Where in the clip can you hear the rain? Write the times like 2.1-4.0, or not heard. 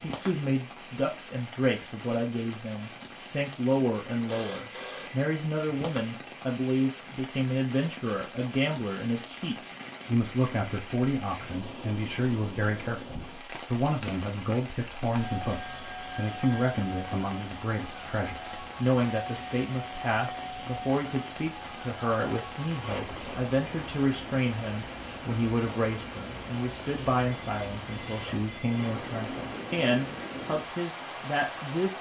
0.0-31.9.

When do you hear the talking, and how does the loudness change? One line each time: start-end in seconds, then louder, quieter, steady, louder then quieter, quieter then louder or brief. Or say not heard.
0.0-31.9 steady.